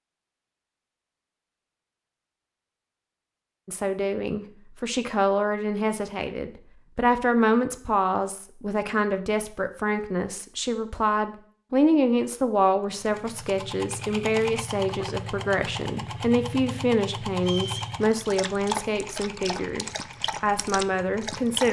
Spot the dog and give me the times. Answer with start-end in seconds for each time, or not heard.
18.0-21.6.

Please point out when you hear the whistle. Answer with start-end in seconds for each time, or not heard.
17.4-17.9.